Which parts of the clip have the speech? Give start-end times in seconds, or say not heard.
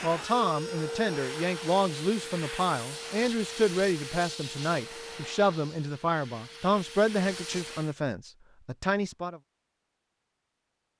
0.0-9.4.